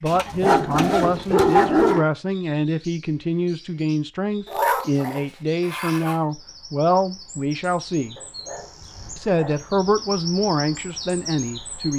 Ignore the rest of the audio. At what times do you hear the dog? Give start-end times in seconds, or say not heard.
0.1-2.0, 4.5-6.2, 8.2-9.7.